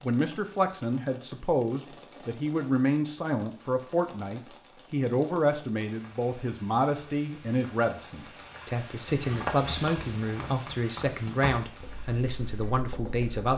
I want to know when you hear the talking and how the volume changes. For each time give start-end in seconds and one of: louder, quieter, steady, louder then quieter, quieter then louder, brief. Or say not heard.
0.0-13.5 steady.